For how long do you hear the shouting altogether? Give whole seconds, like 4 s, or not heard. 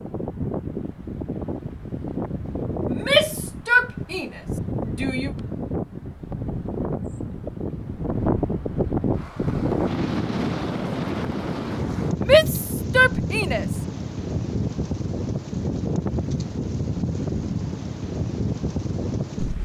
4 s.